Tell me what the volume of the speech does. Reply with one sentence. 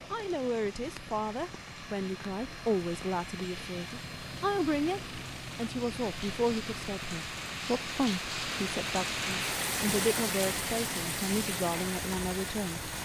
The loudness of the speech stays about the same.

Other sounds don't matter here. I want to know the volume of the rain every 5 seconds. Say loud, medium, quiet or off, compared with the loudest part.
quiet, loud, loud.